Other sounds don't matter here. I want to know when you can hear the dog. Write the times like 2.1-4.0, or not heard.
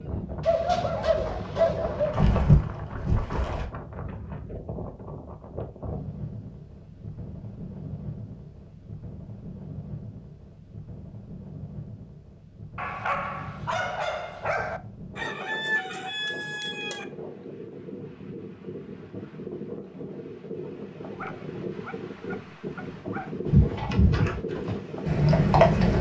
0.4-2.1, 12.8-14.8, 21.1-23.3.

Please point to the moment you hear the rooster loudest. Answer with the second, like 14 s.
16 s.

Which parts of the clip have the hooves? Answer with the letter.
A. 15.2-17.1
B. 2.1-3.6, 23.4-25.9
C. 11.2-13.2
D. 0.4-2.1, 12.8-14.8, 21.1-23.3
B.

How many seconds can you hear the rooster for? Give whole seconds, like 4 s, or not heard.
2 s.